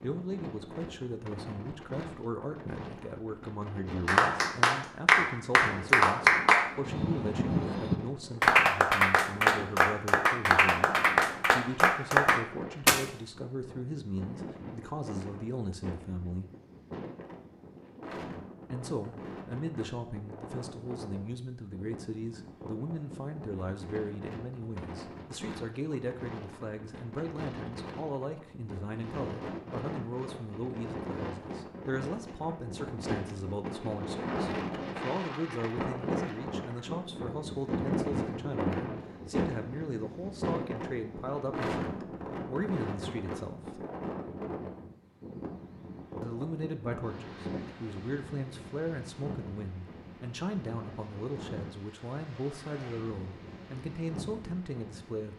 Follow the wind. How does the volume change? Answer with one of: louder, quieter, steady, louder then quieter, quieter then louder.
louder then quieter.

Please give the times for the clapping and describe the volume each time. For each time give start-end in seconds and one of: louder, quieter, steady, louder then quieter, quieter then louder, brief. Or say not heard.
4.0-13.1 steady.